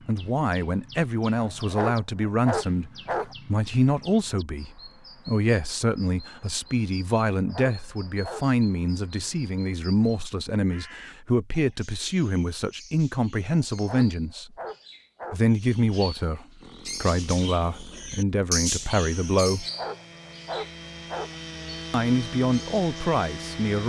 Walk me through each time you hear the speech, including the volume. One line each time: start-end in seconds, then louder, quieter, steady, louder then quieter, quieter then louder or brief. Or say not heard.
0.1-14.5 steady
15.3-19.6 steady
21.9-23.8 brief.